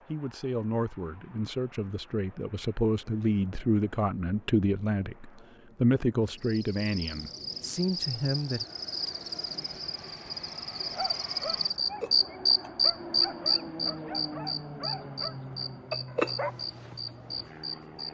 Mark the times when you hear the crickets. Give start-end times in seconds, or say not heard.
6.3-18.0.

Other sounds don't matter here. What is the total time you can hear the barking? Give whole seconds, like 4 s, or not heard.
6 s.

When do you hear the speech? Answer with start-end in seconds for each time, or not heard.
0.1-8.7.